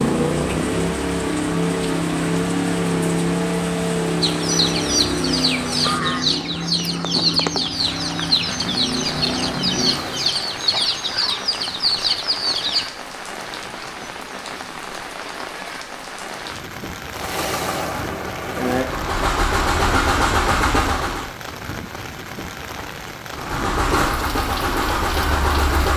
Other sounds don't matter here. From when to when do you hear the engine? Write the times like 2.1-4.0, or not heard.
0.0-10.3, 17.1-21.4, 23.3-25.9.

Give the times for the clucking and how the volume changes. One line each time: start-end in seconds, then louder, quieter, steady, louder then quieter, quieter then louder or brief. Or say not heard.
4.2-12.8 steady.